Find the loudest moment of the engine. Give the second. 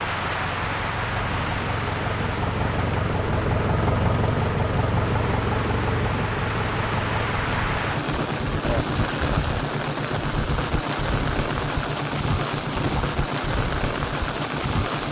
4 s.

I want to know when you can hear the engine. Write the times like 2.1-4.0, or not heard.
0.0-15.0.